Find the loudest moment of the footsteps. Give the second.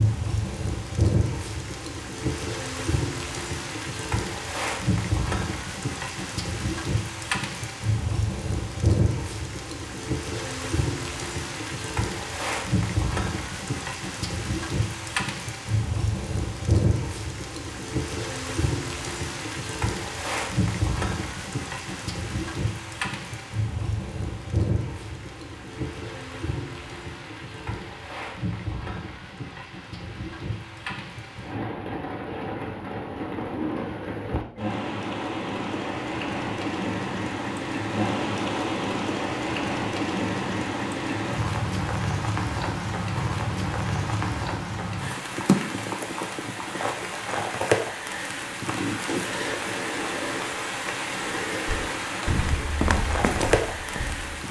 53 s.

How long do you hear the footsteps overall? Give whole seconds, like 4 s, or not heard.
3 s.